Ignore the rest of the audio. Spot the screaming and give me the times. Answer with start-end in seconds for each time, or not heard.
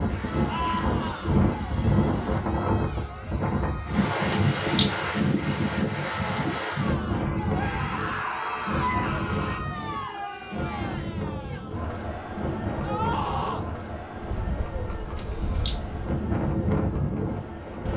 0.5-1.4, 7.5-9.6, 12.8-13.7.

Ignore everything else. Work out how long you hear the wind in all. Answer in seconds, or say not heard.
18 s.